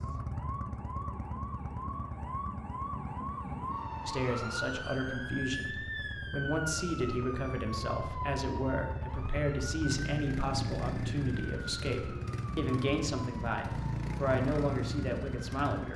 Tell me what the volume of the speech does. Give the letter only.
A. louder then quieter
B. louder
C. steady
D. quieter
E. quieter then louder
C.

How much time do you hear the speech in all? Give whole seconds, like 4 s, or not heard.
12 s.